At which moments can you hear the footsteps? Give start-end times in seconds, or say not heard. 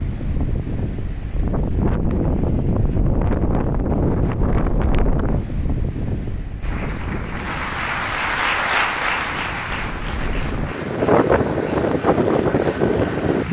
not heard.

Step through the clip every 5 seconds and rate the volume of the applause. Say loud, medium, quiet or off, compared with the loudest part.
off, loud, quiet.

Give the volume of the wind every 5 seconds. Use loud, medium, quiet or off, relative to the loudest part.
loud, medium, loud.